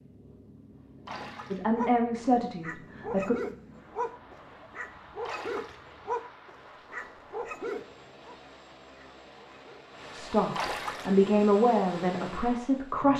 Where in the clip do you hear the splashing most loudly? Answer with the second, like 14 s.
11 s.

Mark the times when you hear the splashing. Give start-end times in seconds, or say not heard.
1.1-1.7, 5.2-5.8, 10.6-11.2.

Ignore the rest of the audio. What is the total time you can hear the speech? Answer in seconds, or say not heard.
5 s.